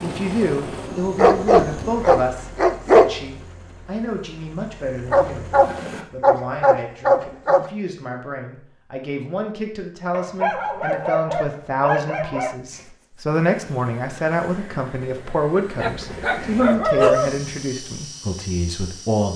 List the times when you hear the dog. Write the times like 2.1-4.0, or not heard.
1.1-3.1, 5.1-7.7, 10.1-12.6, 15.8-17.4.